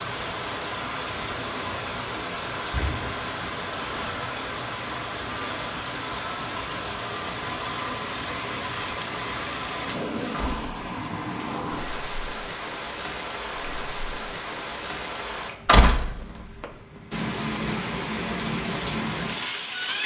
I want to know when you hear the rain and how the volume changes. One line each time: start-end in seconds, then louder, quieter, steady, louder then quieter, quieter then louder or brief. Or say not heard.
0.0-20.0 steady.